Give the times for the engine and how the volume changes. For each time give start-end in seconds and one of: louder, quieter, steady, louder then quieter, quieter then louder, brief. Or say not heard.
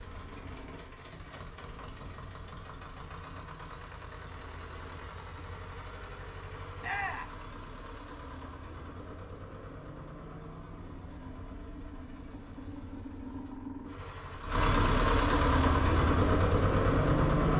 0.0-17.5 louder.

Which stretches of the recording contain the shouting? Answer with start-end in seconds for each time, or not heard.
6.8-7.3.